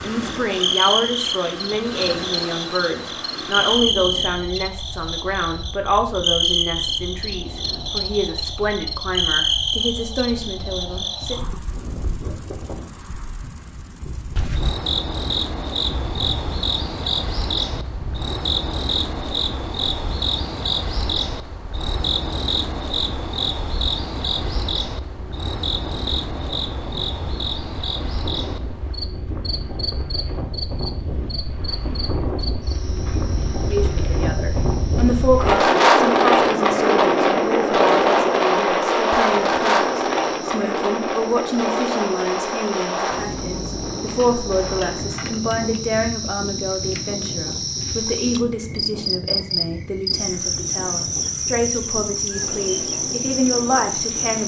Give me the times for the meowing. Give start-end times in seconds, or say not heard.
not heard.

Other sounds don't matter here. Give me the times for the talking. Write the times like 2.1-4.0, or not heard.
0.0-11.4, 33.6-54.4.